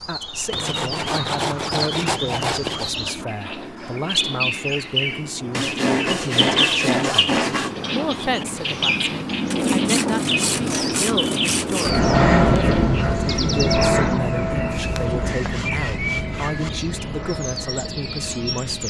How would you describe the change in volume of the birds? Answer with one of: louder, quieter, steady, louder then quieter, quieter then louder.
louder then quieter.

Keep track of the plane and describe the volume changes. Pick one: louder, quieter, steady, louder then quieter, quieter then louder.
louder then quieter.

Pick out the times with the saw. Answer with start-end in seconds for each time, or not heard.
0.5-2.9, 5.5-7.7, 9.5-12.0, 14.7-16.7.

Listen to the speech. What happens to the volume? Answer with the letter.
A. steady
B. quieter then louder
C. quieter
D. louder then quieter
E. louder
A.